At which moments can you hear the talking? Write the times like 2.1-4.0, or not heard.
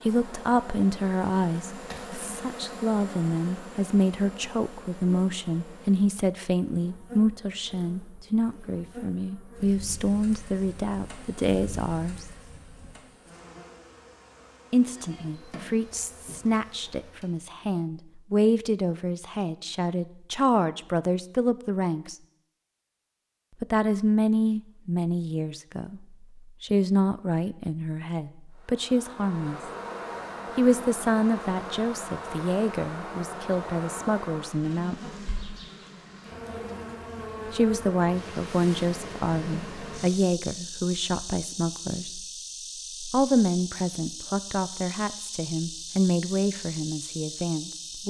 0.0-12.2, 14.7-22.1, 23.6-29.6, 30.6-35.2, 37.5-42.2, 43.1-48.0.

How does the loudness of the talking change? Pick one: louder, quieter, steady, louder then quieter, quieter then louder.
steady.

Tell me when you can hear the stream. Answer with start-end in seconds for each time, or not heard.
not heard.